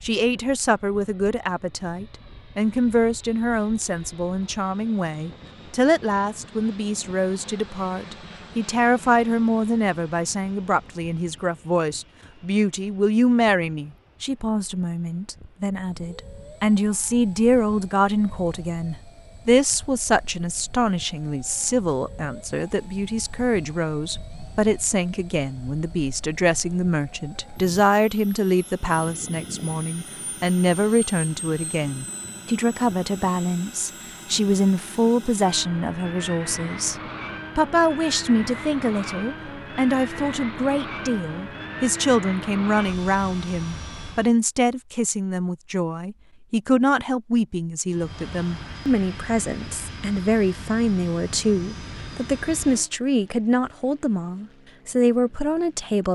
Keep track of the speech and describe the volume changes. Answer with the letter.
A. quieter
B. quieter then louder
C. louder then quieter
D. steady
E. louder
D.